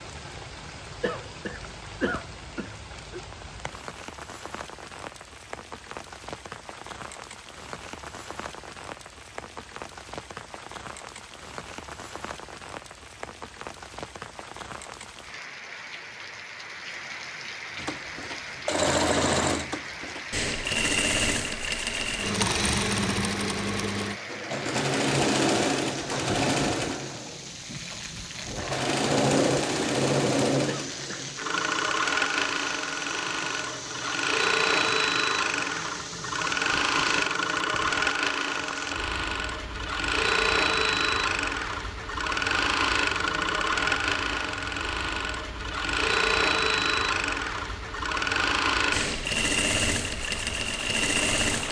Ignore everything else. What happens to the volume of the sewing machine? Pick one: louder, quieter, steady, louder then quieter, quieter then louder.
steady.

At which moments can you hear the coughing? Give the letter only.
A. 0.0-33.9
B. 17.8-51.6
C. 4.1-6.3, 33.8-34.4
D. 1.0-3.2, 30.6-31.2
D.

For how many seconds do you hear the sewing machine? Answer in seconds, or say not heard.
34 s.